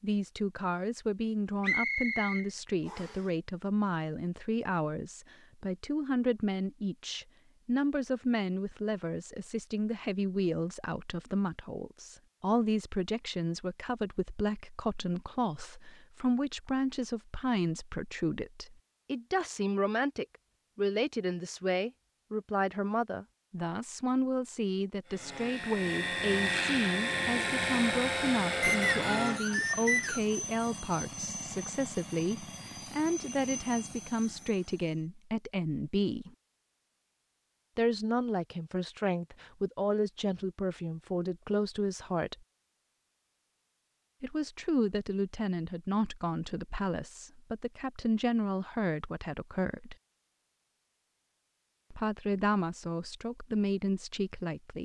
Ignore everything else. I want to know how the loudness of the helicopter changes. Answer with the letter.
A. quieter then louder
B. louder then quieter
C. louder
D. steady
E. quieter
E.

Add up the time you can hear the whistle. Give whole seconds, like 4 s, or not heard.
3 s.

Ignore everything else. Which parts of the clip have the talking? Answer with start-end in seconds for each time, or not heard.
0.0-36.3, 37.8-42.4, 44.2-50.0, 51.9-54.8.